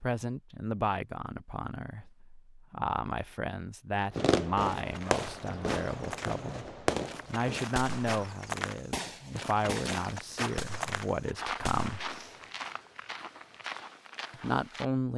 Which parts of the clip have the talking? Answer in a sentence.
You can hear the talking from 0.0 to 12.0 s and from 14.3 to 15.1 s.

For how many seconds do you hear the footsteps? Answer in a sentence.
The footsteps can be heard for 10 seconds in total.